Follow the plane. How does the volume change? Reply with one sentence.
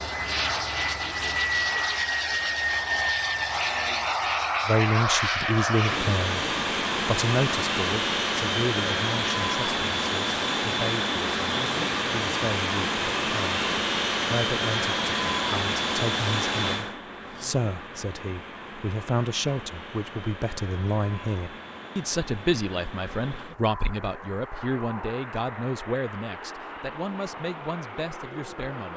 The loudness of the plane goes down.